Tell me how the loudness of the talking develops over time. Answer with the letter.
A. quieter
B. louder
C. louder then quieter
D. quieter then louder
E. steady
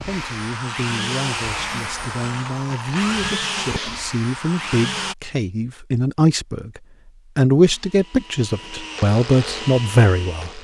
B.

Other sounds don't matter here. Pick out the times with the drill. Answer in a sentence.
You can hear the drill from 0.0 to 5.2 s and from 7.6 to 10.5 s.